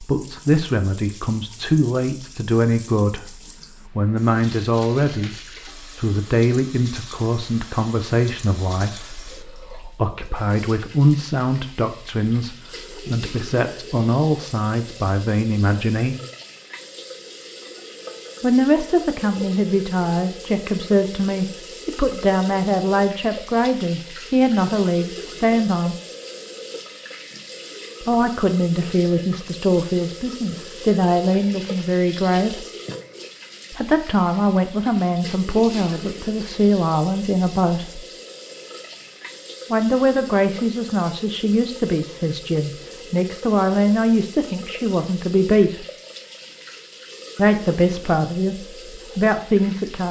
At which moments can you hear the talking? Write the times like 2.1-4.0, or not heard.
0.0-16.1, 18.4-25.9, 28.0-32.6, 33.7-38.0, 39.7-45.9, 47.4-50.0.